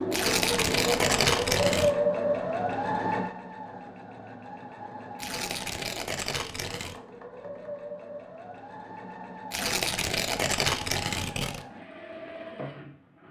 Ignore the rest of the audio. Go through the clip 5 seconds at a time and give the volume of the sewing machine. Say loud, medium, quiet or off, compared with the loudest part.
loud, quiet, quiet.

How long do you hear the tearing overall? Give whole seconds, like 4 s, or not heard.
6 s.